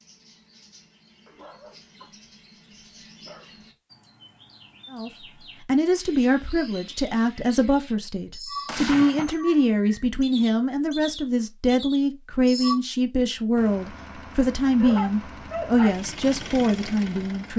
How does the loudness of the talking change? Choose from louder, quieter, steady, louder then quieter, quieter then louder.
steady.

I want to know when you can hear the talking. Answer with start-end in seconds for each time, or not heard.
4.9-17.5.